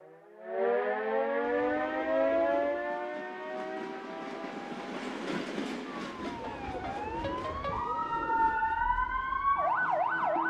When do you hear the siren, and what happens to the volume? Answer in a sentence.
You can hear the siren from 0.0 to 10.4 s, getting quieter then louder.